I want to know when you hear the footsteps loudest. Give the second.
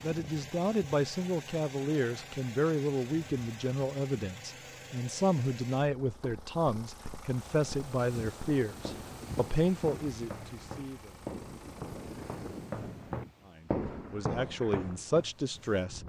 14 s.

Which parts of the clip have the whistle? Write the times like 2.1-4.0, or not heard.
not heard.